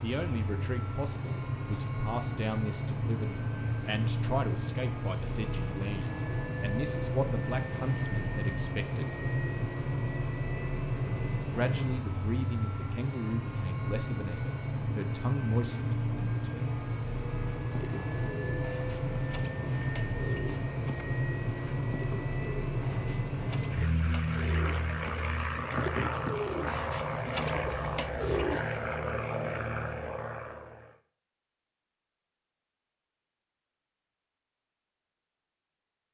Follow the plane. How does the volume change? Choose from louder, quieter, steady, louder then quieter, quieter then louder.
steady.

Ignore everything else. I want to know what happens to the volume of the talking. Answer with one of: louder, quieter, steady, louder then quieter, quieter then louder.
steady.